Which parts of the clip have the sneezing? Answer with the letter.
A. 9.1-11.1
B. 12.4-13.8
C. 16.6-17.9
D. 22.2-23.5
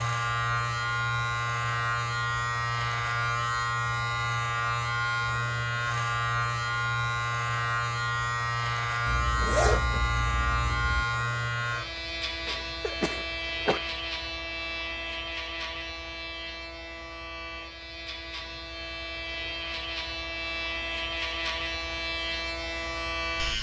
B.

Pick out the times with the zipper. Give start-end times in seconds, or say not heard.
9.1-11.1.